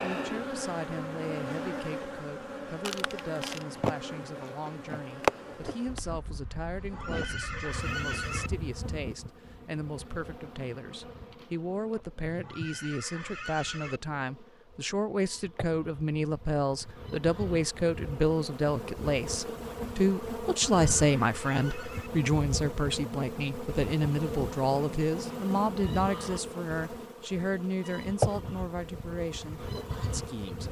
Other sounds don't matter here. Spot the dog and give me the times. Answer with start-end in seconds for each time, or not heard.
not heard.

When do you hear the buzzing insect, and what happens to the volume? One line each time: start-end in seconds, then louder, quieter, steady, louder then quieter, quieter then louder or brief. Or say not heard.
0.0-30.6 quieter then louder.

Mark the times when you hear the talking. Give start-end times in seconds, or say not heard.
0.0-30.6.